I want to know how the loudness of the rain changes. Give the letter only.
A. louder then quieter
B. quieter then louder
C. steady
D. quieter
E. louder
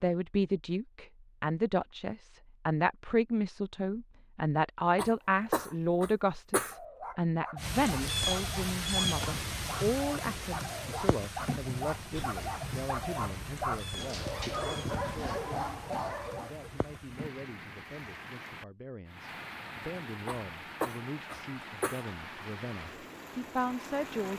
D.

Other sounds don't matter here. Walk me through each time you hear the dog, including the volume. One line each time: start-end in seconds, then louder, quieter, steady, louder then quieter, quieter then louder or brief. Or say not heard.
6.6-16.6 louder.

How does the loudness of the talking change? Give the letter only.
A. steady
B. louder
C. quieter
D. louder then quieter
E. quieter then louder
E.